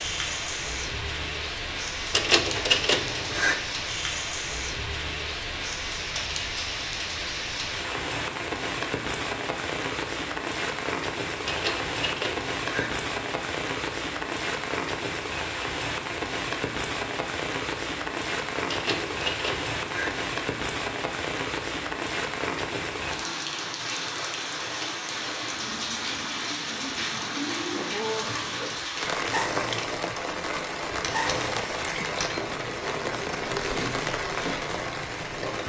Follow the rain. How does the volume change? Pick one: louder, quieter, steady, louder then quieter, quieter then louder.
steady.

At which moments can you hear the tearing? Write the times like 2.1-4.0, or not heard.
not heard.